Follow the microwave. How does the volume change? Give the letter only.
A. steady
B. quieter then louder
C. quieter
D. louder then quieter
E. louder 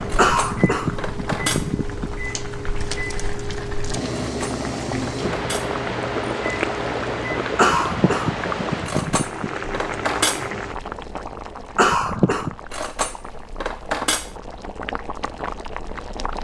A.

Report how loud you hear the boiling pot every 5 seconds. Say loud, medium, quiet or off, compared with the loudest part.
medium, loud, medium, medium.